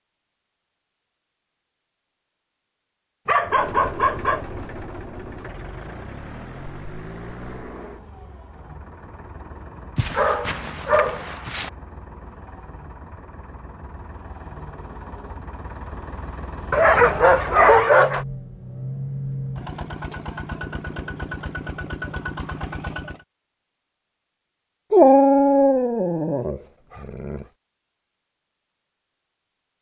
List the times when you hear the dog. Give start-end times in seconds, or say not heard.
3.2-4.5, 9.9-11.7, 16.7-18.2, 24.9-27.4.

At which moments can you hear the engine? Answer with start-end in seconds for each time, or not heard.
3.4-23.2.